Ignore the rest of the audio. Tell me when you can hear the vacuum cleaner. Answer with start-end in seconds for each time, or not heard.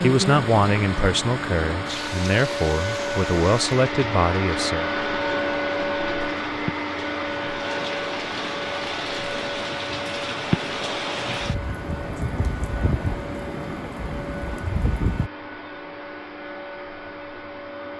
0.0-17.9.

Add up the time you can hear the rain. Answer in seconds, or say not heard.
15 s.